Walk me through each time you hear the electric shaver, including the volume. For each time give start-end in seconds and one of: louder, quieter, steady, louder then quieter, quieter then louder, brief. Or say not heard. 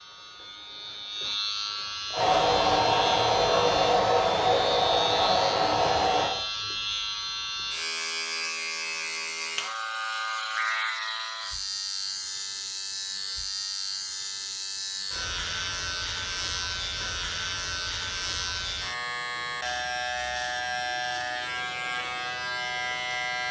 0.0-23.4 steady.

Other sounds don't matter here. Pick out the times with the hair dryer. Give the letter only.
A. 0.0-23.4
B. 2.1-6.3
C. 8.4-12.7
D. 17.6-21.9
B.